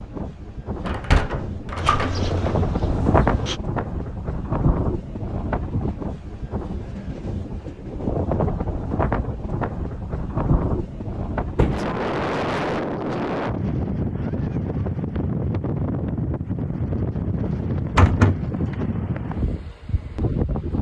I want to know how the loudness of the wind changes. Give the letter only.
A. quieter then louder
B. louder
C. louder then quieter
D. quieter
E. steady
E.